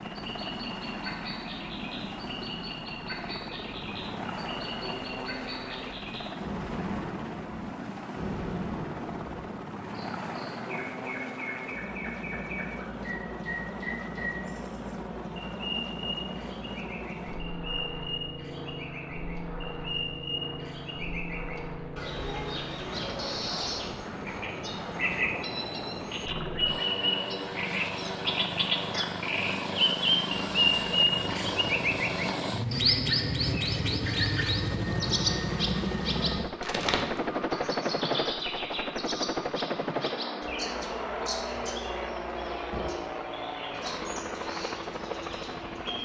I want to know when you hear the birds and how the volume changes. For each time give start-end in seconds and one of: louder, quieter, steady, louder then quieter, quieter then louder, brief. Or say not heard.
0.0-46.0 louder then quieter.